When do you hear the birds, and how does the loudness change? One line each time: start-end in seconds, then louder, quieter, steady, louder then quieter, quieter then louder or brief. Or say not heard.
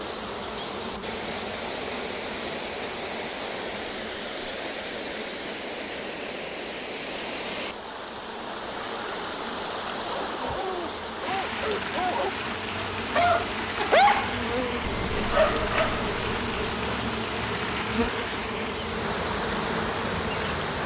not heard.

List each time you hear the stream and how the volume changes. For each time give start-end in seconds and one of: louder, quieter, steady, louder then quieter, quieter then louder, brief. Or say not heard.
0.0-20.8 steady.